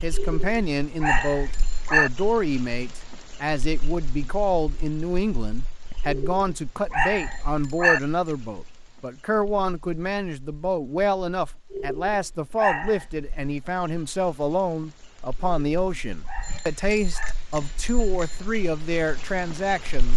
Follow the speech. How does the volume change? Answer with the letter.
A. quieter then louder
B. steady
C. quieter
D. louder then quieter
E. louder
B.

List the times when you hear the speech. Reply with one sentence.
You can hear the speech from 0.0 to 20.1 s.